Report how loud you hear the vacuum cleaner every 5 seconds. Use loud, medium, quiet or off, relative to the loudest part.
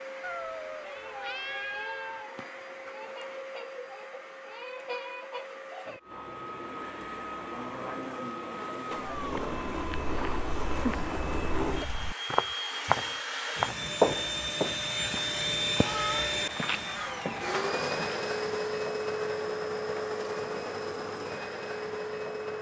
medium, medium, loud, loud, loud.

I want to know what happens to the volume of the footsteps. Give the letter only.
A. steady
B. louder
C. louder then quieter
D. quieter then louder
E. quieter
C.